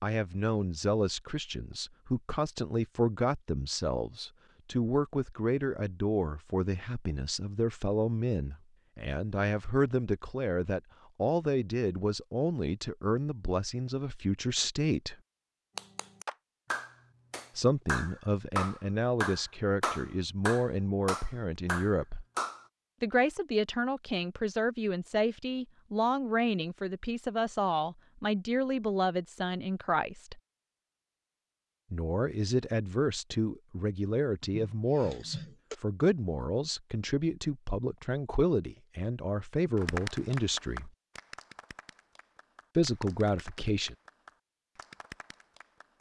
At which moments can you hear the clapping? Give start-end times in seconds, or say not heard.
15.8-22.6, 39.8-45.9.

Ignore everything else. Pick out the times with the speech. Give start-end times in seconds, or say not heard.
0.0-15.2, 17.6-22.2, 23.0-30.4, 31.9-40.9, 42.8-44.0.